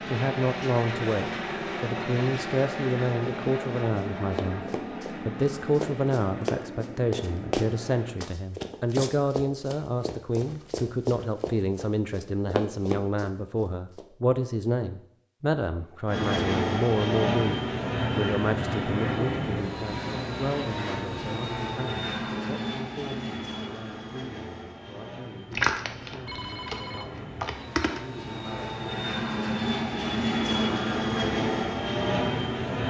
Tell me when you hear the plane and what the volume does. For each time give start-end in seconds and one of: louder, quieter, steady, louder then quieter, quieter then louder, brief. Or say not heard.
0.0-8.2 quieter
16.1-32.8 quieter then louder.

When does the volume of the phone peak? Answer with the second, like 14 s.
26 s.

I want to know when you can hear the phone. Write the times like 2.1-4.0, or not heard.
25.5-28.0.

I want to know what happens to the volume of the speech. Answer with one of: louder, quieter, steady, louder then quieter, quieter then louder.
quieter.